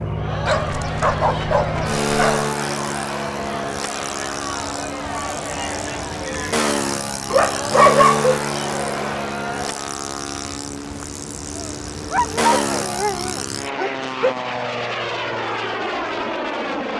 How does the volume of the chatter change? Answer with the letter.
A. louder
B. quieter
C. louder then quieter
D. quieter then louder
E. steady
E.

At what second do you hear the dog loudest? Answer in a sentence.
The loudest moment of the dog is at 8 seconds.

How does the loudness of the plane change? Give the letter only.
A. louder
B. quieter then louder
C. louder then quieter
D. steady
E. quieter
D.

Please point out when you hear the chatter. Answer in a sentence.
You can hear the chatter from 0.0 to 9.9 s.